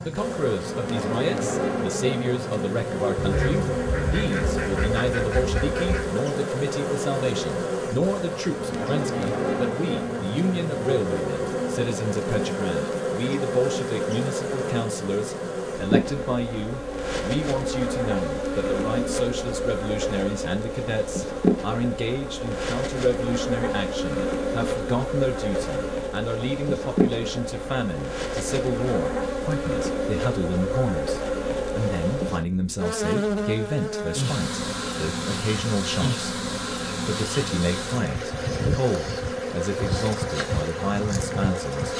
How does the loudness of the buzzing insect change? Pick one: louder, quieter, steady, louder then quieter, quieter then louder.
steady.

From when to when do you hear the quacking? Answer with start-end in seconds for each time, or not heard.
3.1-6.2.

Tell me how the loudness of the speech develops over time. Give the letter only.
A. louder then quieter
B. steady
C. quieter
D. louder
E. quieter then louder
B.